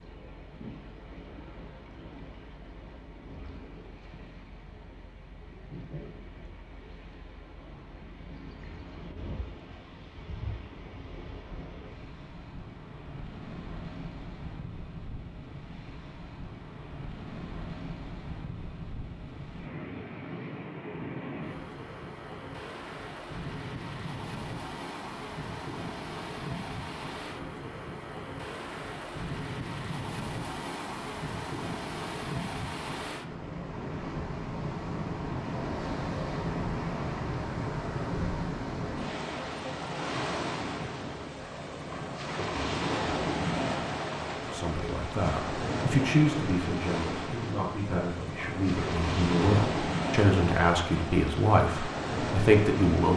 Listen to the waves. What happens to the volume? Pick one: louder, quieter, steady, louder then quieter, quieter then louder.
louder.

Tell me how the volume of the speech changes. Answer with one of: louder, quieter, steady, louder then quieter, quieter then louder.
quieter then louder.